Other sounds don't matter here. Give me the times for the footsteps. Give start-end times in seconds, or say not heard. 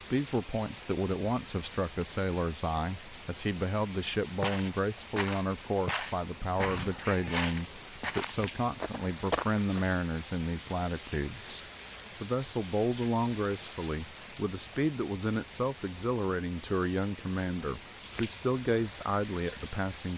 4.4-9.8.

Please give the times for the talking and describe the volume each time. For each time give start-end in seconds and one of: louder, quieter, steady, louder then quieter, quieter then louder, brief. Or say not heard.
0.1-20.1 steady.